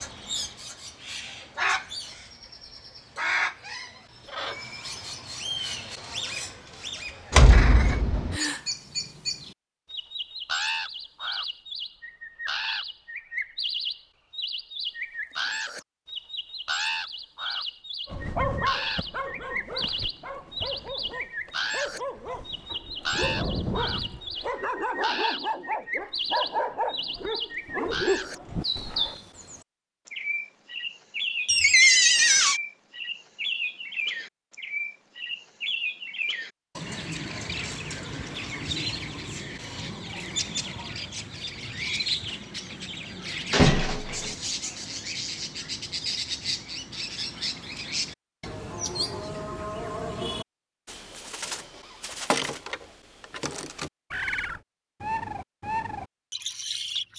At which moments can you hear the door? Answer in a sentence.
You can hear the door from 7.3 to 8.4 s, from 31.4 to 32.6 s and from 43.5 to 44.3 s.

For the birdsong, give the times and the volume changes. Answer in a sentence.
The birdsong can be heard from 0.0 to 57.1 s, at a steady volume.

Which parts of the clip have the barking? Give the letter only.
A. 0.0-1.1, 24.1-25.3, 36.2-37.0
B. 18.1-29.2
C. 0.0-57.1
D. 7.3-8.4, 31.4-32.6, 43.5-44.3
B.